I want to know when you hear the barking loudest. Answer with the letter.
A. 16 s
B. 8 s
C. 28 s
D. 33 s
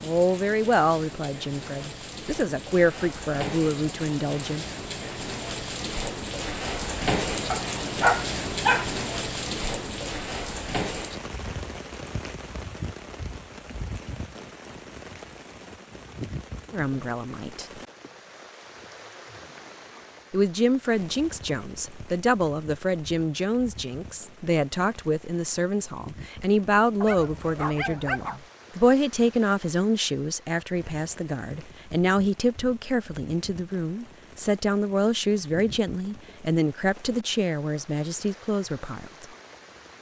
B.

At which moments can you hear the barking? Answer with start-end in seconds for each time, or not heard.
7.5-8.9, 27.0-28.4.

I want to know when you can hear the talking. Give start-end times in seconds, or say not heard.
0.0-4.7, 16.7-17.6, 20.3-39.2.